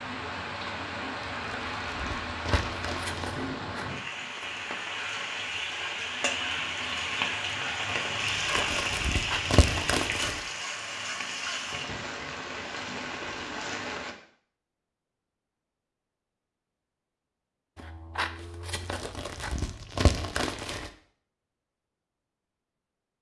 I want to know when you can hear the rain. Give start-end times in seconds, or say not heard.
0.0-14.2.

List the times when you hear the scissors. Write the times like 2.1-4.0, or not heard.
2.4-3.9, 9.1-9.6, 17.8-19.6.